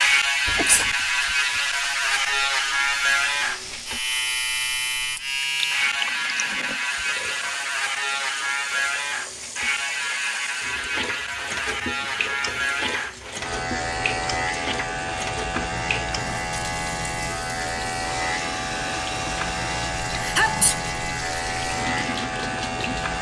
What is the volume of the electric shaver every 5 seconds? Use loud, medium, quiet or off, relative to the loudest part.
loud, loud, medium, medium, medium.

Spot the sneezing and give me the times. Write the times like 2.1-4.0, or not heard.
0.5-0.9, 20.2-20.8.